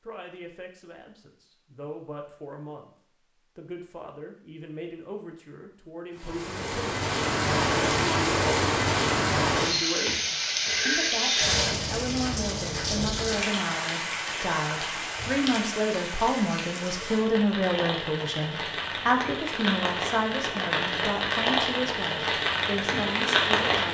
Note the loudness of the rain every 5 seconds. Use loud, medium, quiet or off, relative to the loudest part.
off, loud, loud, medium, loud.